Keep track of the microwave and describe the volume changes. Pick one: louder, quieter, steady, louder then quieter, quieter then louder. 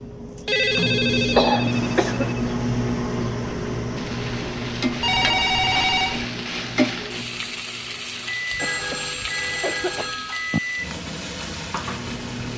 quieter.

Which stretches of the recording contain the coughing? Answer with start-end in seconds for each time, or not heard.
1.3-2.4, 8.5-10.2.